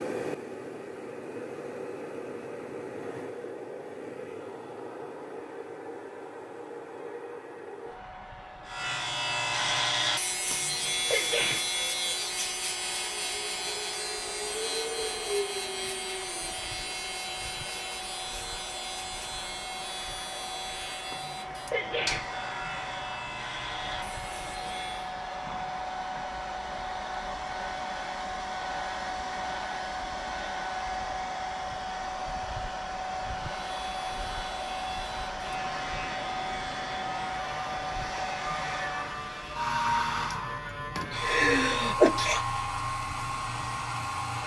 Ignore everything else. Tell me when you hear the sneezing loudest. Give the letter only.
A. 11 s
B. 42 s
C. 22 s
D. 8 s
B.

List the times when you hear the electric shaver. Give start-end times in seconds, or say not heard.
8.7-25.1, 33.6-44.4.